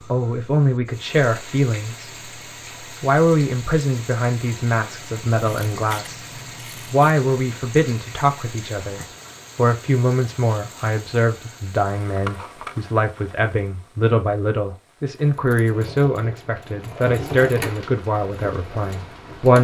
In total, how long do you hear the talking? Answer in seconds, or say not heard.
18 s.